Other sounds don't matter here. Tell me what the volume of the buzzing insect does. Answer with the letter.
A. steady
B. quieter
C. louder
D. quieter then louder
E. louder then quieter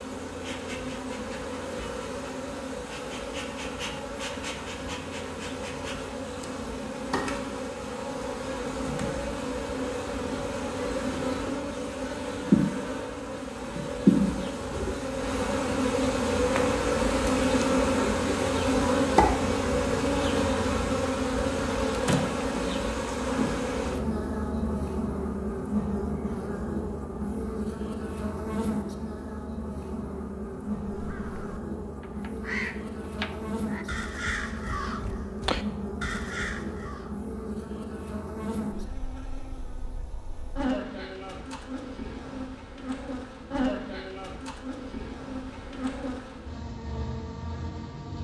E.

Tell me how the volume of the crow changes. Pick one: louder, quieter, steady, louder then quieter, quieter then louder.
louder.